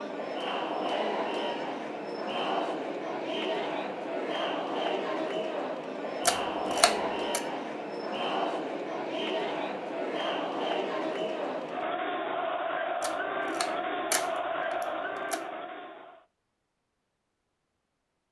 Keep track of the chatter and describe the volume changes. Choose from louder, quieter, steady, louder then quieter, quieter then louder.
steady.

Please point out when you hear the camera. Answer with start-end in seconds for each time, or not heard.
6.2-7.4, 13.0-15.4.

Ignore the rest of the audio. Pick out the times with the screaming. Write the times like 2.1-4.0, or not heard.
not heard.